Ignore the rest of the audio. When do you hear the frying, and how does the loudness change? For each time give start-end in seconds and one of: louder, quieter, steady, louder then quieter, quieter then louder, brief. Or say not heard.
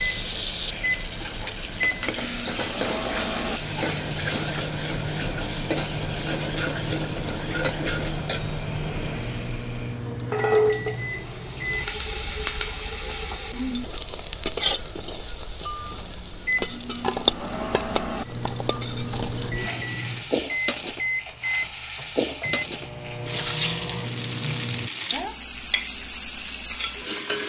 0.0-27.4 steady.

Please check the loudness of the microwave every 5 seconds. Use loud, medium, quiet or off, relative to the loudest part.
loud, loud, loud, loud, loud, off.